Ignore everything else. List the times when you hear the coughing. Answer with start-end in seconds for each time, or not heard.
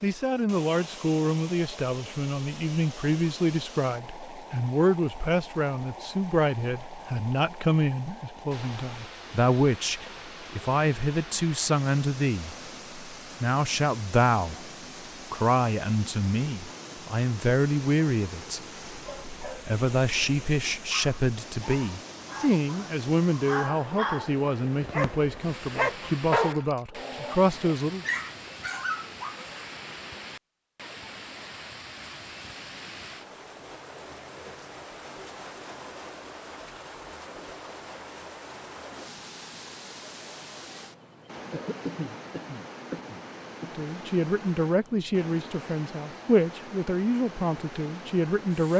41.5-43.9.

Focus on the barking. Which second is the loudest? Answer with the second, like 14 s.
26 s.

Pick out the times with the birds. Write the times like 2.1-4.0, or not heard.
not heard.